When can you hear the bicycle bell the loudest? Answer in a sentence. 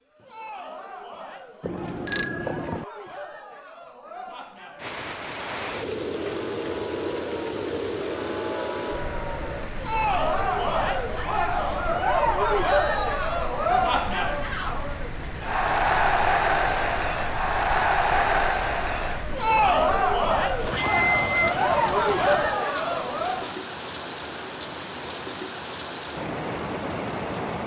The loudest moment of the bicycle bell is at 21 seconds.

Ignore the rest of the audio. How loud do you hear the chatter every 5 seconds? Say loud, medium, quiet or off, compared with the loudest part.
quiet, medium, loud, loud, loud, off.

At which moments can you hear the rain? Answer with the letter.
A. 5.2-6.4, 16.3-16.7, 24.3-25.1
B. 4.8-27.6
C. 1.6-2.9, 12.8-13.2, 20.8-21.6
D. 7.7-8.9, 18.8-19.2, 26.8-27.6
B.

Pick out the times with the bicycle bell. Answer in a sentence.
The bicycle bell can be heard from 1.6 to 2.9 s, from 12.8 to 13.2 s and from 20.8 to 21.6 s.